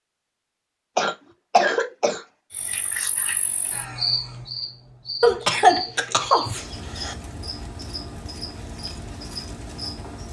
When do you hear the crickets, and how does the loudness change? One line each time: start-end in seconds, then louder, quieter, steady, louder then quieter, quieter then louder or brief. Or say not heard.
2.5-10.2 quieter.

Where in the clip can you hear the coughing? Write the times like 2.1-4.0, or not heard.
0.9-2.2, 5.2-7.2.